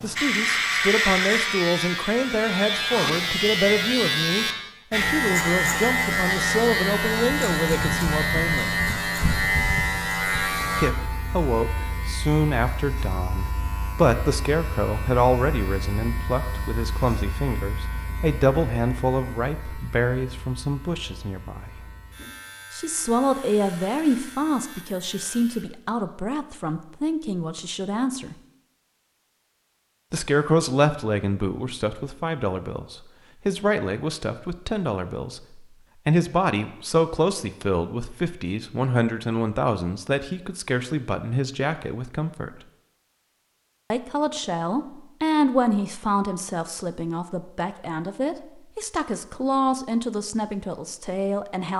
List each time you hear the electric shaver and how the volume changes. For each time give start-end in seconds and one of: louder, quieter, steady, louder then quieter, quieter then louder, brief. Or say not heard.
0.0-25.9 quieter.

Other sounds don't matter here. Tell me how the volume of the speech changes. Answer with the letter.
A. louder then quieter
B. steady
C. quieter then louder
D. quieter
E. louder
B.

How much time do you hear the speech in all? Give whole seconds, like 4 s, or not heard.
46 s.